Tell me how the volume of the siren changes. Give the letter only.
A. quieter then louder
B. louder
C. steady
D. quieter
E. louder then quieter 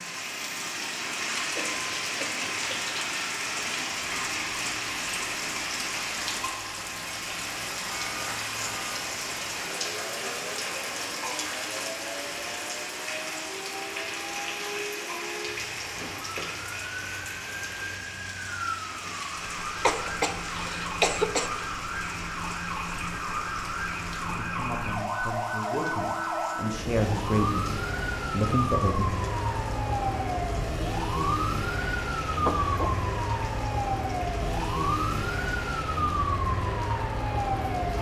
B.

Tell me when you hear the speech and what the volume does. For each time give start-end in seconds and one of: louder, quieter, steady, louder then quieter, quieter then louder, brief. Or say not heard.
24.2-29.1 louder.